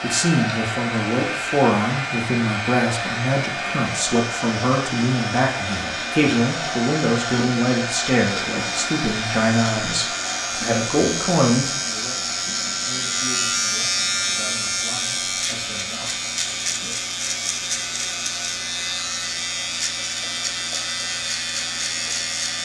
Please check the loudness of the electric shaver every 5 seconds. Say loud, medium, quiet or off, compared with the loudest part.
medium, medium, loud, loud, loud.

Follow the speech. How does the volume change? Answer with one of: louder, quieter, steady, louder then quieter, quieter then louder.
quieter.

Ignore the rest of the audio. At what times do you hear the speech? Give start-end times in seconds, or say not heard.
0.0-16.9.